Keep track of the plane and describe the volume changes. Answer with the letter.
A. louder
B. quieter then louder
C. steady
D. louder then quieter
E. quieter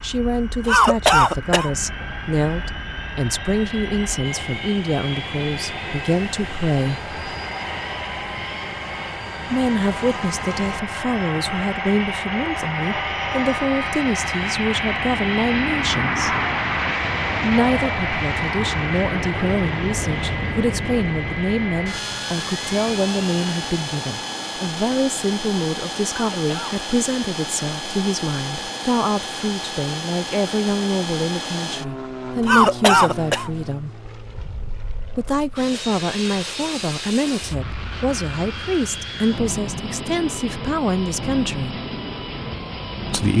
D.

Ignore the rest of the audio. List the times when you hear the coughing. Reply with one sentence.
You can hear the coughing from 0.7 to 1.7 s, from 26.1 to 26.8 s and from 32.5 to 33.5 s.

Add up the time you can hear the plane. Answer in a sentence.
The plane can be heard for 43 seconds in total.